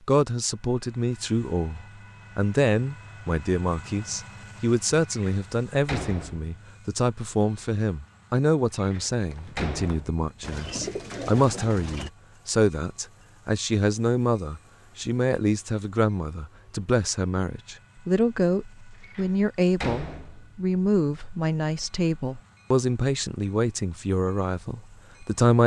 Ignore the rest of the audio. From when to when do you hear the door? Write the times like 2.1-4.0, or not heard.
5.1-6.5, 8.8-11.3, 19.0-20.5.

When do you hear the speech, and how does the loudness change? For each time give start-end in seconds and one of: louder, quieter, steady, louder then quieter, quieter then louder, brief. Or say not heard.
0.1-25.6 steady.